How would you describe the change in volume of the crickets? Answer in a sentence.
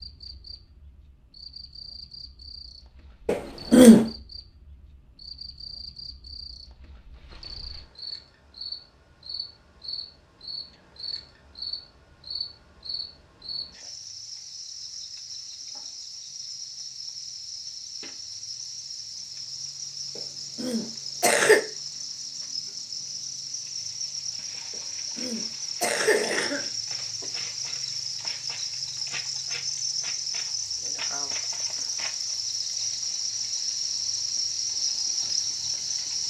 The volume of the crickets goes up.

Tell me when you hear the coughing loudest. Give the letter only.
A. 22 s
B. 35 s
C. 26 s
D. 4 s
D.